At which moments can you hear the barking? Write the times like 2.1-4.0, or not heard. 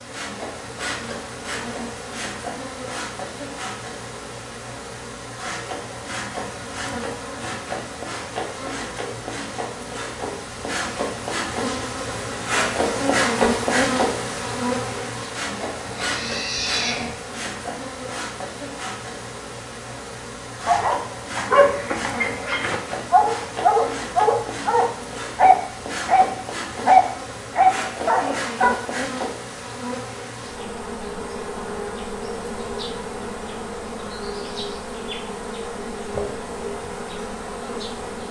20.6-28.8.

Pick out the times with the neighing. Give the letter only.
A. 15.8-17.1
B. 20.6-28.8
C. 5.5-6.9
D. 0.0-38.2
A.